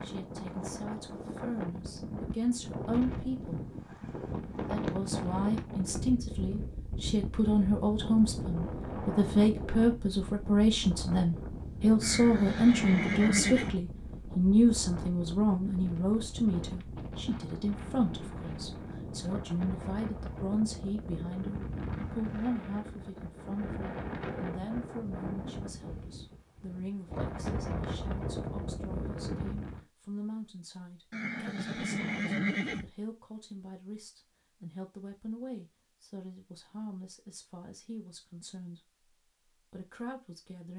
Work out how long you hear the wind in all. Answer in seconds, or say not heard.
30 s.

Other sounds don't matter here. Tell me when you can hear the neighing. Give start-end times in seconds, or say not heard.
12.0-13.8, 31.1-32.9.